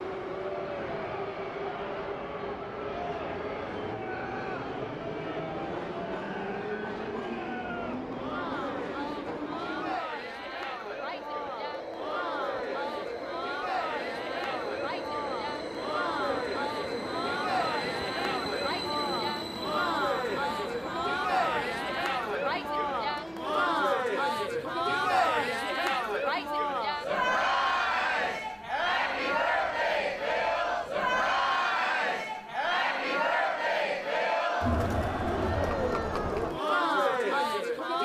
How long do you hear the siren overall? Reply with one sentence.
The siren can't be heard in this clip.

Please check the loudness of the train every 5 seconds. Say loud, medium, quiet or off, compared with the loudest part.
loud, loud, loud, loud, medium, quiet, quiet, off.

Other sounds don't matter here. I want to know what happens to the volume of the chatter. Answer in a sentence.
The loudness of the chatter goes up.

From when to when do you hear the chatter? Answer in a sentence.
The chatter can be heard from 0.3 to 37.9 s.